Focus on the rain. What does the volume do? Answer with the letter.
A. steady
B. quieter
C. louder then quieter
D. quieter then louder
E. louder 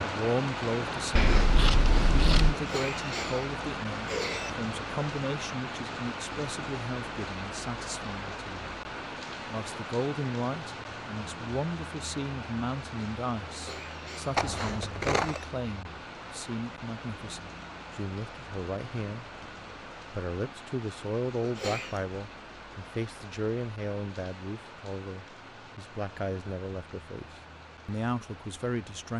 B.